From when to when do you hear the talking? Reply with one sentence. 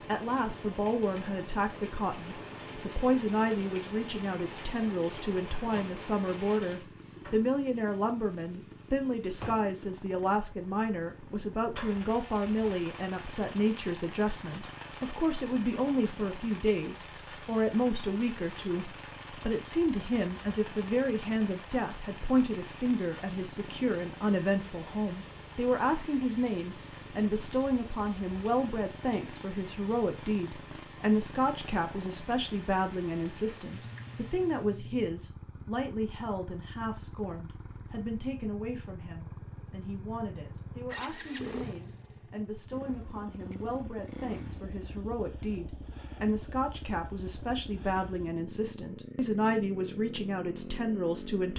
You can hear the talking from 0.1 to 51.5 s.